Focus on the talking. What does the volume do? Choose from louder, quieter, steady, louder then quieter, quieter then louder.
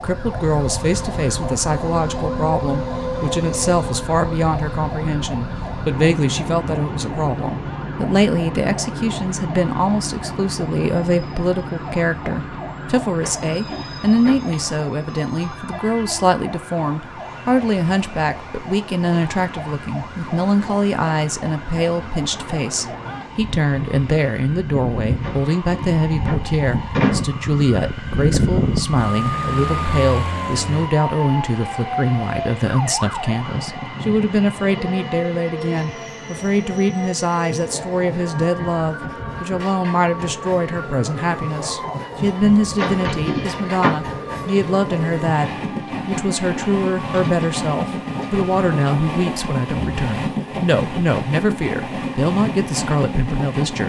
steady.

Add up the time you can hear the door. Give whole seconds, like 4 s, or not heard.
5 s.